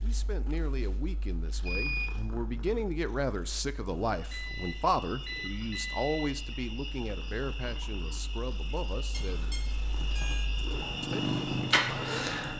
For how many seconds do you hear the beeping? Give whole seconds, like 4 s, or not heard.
4 s.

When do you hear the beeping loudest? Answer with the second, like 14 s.
2 s.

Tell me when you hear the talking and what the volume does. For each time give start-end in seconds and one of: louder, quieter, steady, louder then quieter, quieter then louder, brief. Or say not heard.
0.0-9.6 louder then quieter
11.0-12.3 brief.